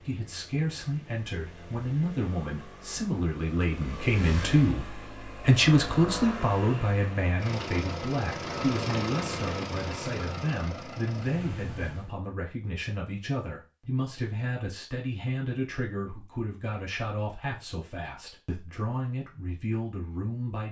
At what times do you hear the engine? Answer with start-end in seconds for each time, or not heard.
0.0-12.2.